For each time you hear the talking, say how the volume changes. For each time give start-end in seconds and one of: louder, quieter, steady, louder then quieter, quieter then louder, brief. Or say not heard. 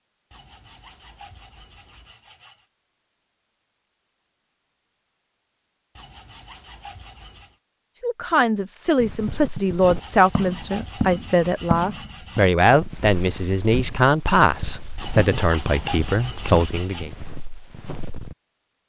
8.0-17.1 steady.